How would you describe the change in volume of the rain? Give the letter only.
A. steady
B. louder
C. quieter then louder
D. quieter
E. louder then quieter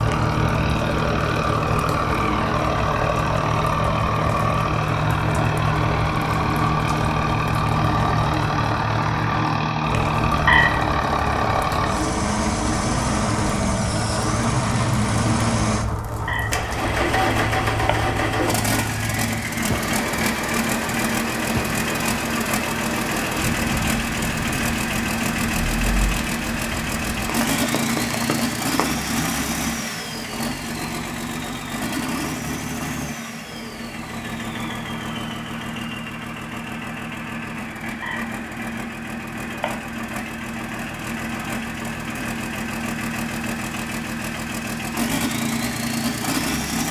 A.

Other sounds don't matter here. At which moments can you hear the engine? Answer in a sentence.
The engine can be heard from 0.0 to 46.8 s.